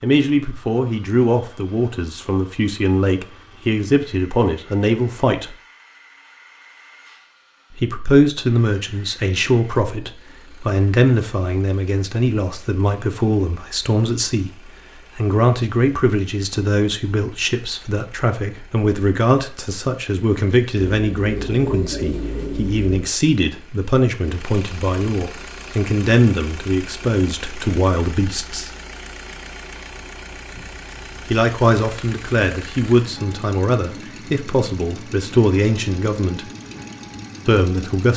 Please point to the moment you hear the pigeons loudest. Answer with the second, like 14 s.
22 s.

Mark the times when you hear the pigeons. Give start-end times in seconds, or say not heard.
20.8-23.1.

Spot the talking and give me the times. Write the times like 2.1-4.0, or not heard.
0.0-5.5, 7.7-28.7, 31.3-36.5, 37.5-38.1.